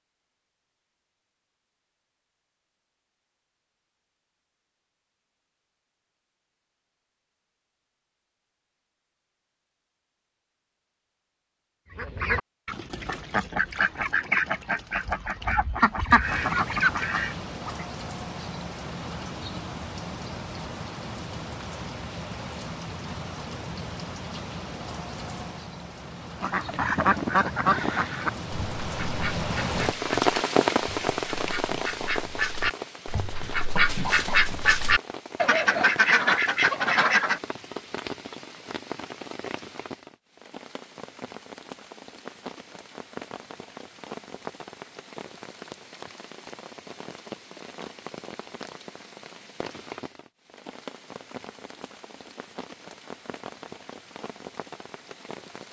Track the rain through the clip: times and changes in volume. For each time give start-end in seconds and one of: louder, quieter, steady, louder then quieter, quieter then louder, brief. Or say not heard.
16.2-55.6 louder then quieter.